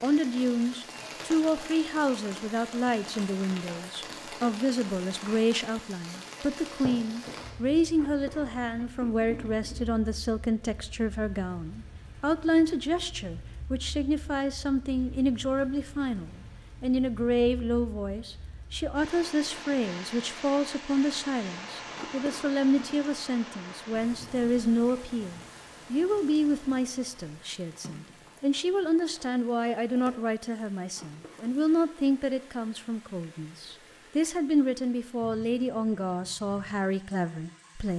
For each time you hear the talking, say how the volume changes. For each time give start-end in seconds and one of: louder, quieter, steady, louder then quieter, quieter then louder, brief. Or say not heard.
0.0-37.9 steady.